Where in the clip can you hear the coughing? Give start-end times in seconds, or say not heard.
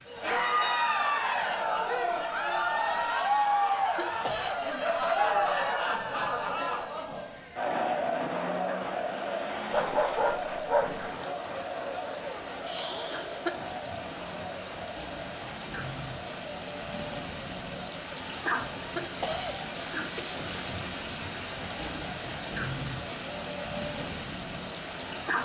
3.2-4.7, 12.7-13.6, 18.1-20.8.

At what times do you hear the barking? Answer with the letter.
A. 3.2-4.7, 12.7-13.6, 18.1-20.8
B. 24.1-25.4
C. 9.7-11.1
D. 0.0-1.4
C.